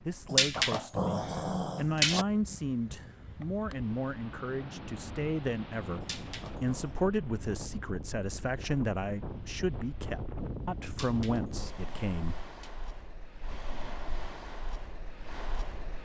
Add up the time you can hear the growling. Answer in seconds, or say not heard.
5 s.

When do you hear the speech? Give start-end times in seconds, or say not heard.
0.0-12.4.